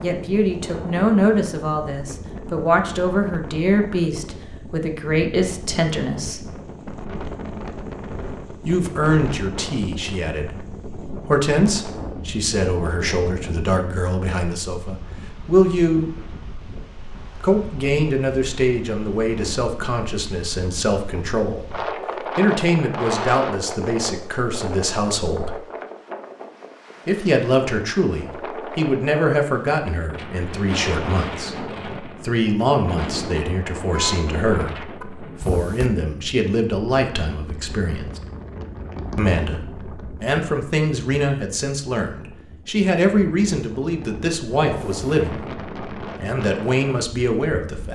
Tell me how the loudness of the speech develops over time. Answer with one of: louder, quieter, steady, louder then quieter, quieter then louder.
steady.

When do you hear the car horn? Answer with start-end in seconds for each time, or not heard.
33.8-35.0.